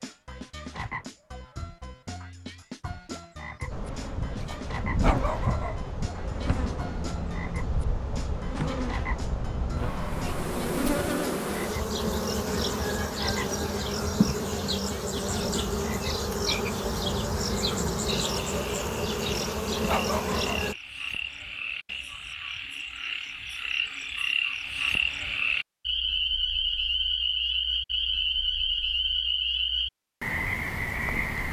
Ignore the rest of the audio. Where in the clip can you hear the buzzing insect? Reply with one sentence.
The buzzing insect can be heard from 3.7 to 20.8 s.